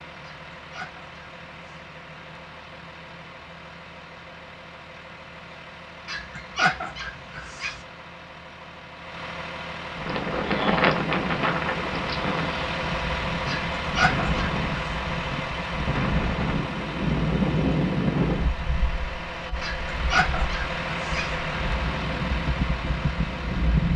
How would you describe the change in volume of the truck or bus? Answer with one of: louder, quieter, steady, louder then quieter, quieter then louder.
louder.